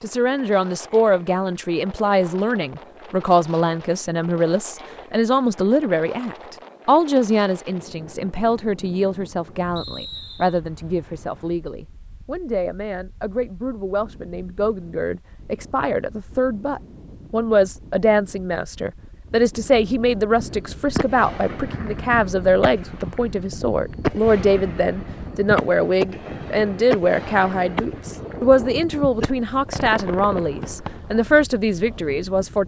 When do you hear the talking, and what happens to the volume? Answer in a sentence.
The talking can be heard from 0.0 to 32.6 s, at a steady volume.